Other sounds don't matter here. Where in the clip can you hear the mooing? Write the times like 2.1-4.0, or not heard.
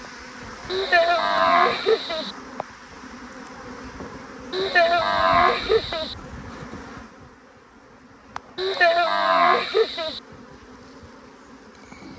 0.7-2.4, 4.5-6.2, 8.6-10.2.